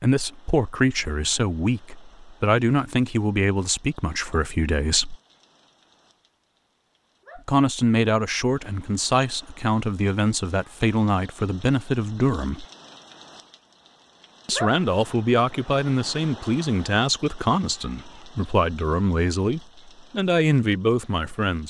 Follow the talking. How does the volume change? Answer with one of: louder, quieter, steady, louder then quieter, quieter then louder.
steady.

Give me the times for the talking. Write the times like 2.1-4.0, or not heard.
0.0-5.2, 7.3-12.7, 14.4-21.6.